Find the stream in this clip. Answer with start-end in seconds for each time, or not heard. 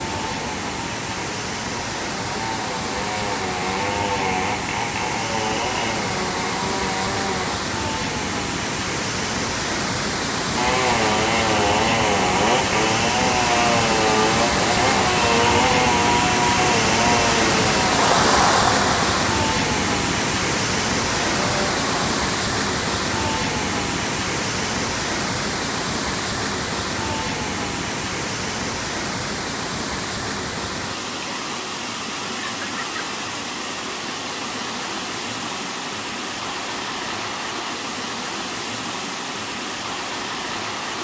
0.0-40.9.